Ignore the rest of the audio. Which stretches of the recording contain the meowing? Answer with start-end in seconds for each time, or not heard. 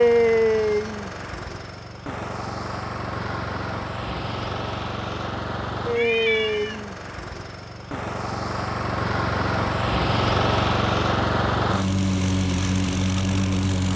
6.0-6.8.